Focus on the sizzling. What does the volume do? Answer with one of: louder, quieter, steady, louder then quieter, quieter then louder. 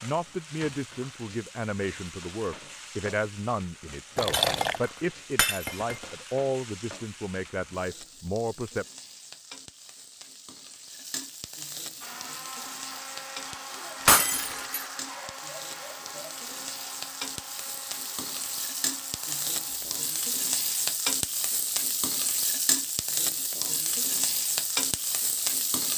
louder.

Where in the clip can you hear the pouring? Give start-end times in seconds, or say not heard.
4.2-4.8, 14.1-14.8.